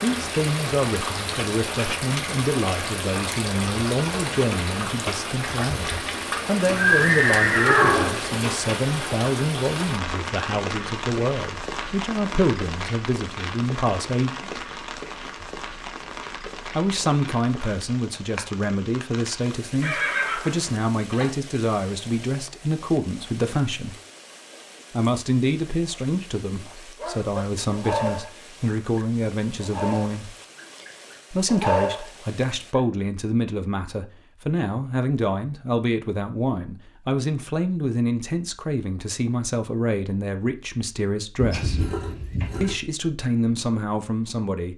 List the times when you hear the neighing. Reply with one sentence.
You can hear the neighing from 6.7 to 8.2 s, from 19.8 to 21.3 s and from 41.4 to 42.8 s.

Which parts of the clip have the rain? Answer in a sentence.
The rain can be heard from 0.0 to 32.8 s.